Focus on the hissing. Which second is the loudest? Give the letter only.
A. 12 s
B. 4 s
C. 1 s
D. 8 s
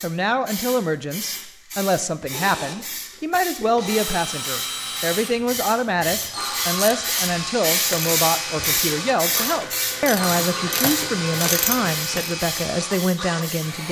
D.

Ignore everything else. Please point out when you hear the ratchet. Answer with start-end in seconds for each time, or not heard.
6.7-12.3.